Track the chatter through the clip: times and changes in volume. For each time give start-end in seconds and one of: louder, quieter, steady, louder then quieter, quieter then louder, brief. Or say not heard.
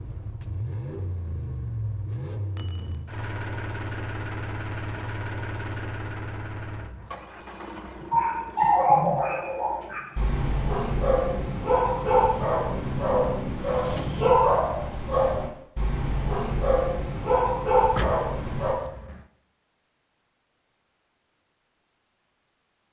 not heard.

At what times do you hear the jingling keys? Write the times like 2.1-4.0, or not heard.
2.5-3.0, 17.9-19.2.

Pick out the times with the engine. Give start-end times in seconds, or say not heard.
0.0-14.4.